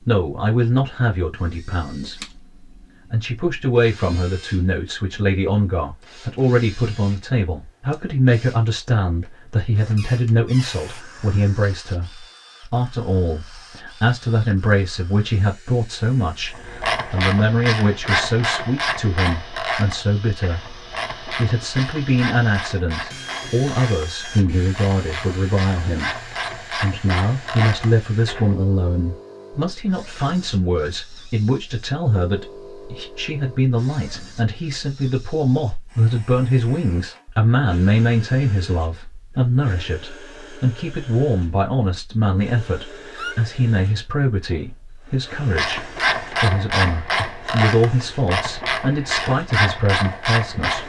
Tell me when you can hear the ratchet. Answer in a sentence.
The ratchet can be heard from 16.5 to 28.6 s and from 45.4 to 50.8 s.